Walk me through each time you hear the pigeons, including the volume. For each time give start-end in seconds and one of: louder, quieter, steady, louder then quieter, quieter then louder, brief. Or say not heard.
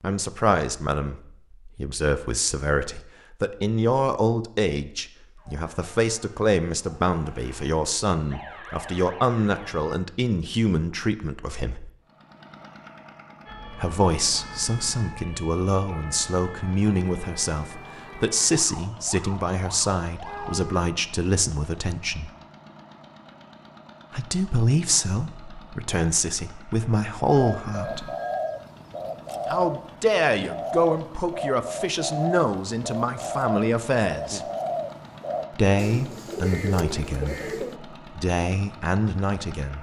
27.4-37.8 steady.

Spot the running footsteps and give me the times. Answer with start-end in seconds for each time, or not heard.
not heard.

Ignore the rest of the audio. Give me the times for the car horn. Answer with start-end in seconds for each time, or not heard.
20.2-20.9.